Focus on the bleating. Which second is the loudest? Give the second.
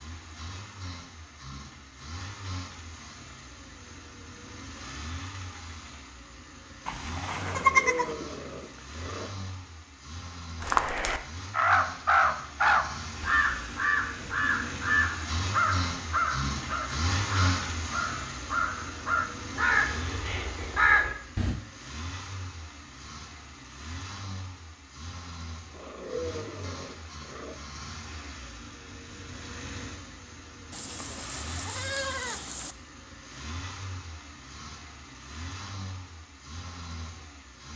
8 s.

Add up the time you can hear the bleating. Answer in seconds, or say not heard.
3 s.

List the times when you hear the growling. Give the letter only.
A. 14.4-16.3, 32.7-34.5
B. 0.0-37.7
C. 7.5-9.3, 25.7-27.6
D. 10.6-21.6
C.